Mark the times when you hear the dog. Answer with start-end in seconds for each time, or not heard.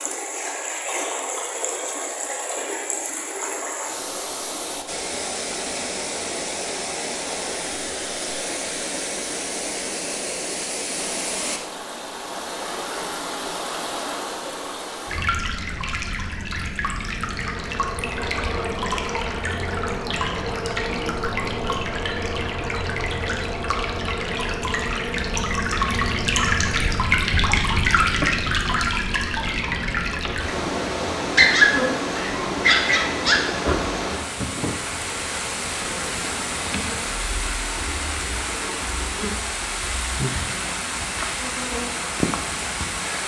31.4-33.4.